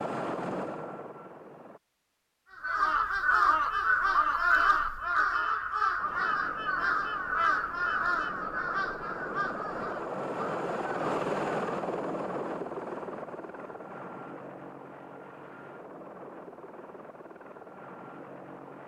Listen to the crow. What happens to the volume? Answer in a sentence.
The volume of the crow goes down.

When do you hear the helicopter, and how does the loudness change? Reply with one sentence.
You can hear the helicopter briefly from 0.0 to 1.8 s; and from 6.0 to 18.8 s, getting louder then quieter.